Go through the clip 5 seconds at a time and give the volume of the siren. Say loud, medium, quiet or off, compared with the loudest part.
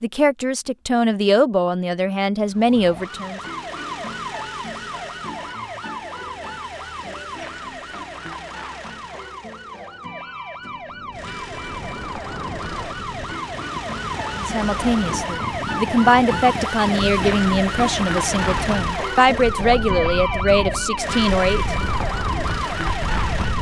medium, medium, medium, loud, loud.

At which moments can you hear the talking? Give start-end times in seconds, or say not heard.
0.0-3.4, 14.3-21.8.